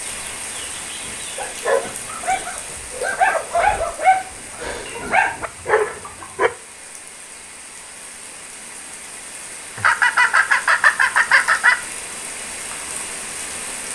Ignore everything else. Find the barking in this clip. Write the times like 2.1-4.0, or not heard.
1.4-6.5.